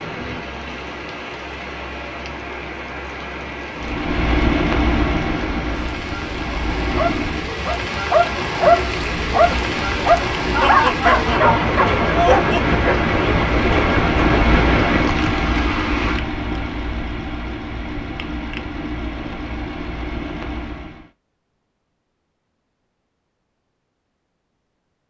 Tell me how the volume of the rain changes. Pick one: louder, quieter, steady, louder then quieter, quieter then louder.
louder.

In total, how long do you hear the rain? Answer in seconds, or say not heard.
16 s.